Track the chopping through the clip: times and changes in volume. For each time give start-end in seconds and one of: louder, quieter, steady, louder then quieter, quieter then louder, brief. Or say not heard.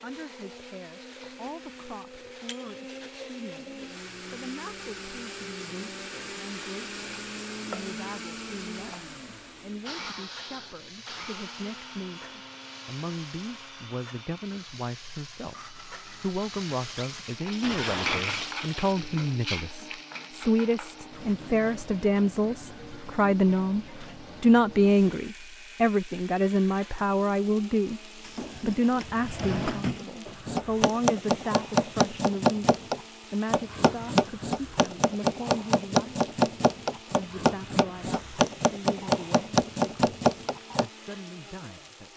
30.2-40.9 steady.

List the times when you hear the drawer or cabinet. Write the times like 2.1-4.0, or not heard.
28.2-30.1.